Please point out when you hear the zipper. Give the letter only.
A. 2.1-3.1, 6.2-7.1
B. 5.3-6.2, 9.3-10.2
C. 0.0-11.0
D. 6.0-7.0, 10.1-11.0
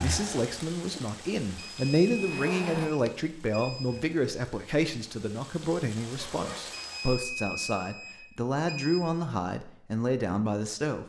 A.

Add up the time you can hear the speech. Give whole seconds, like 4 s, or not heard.
11 s.